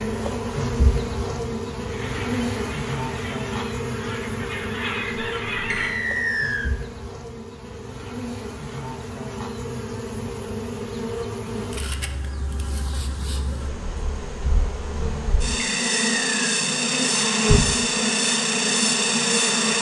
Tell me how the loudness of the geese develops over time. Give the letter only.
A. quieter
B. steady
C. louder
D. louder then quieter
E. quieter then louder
C.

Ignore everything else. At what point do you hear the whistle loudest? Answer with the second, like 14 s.
6 s.